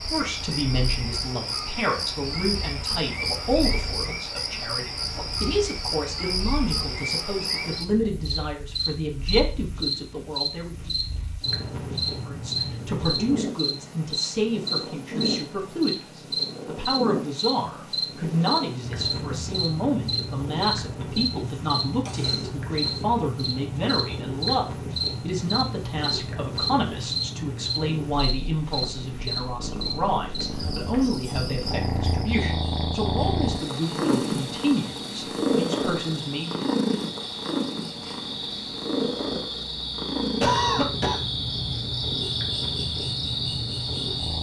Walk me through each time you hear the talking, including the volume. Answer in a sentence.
The talking can be heard from 0.0 to 10.9 s, at a steady volume; and from 12.2 to 36.7 s, at a steady volume.